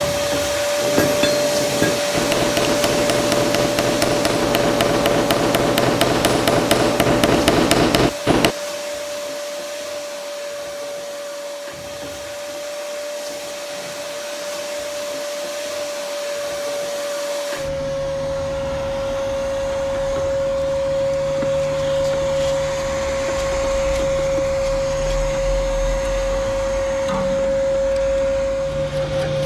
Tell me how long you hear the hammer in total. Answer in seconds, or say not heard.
8 s.